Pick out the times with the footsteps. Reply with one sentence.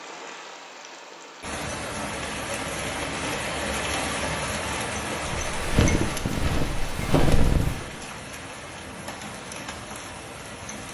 The footsteps can be heard from 5.2 to 7.8 s.